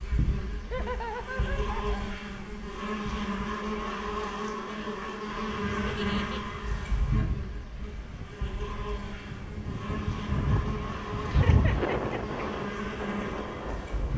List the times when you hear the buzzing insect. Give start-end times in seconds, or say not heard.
0.0-14.1.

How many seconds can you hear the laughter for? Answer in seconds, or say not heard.
3 s.